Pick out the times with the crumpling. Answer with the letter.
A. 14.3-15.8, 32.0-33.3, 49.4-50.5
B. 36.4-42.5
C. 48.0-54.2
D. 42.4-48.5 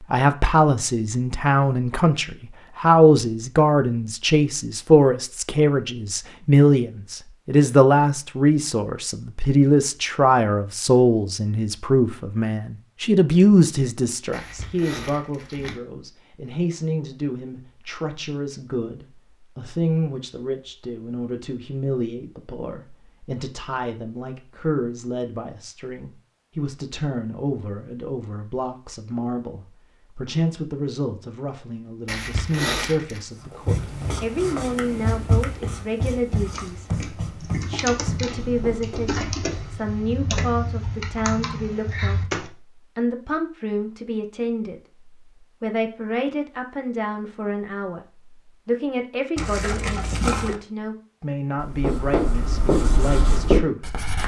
A.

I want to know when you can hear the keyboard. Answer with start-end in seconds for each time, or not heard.
36.4-42.5.